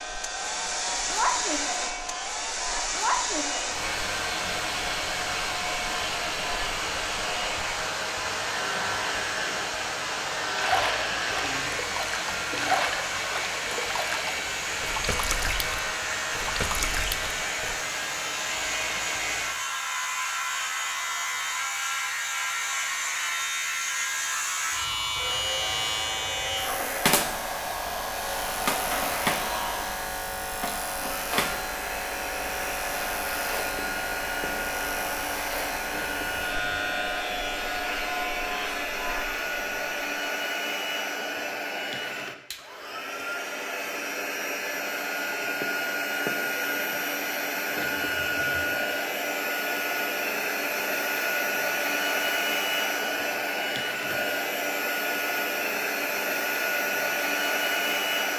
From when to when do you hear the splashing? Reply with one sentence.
You can hear the splashing from 10.6 to 17.8 s.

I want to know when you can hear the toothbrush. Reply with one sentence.
The toothbrush can't be heard in this clip.